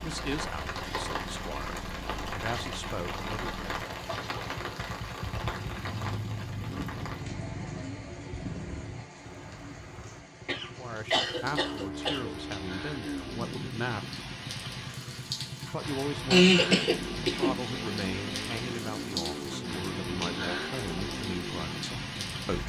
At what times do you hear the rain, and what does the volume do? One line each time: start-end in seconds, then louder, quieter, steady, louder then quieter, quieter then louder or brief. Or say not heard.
0.0-22.6 quieter then louder.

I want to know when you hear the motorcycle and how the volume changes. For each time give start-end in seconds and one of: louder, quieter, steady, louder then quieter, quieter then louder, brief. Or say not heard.
0.0-22.6 louder.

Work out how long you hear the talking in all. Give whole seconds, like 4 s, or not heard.
14 s.